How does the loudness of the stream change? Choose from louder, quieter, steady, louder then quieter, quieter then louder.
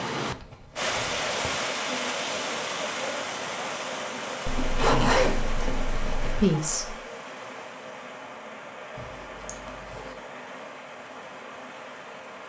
quieter.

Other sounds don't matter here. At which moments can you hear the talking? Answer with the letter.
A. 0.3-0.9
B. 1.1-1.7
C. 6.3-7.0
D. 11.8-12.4
C.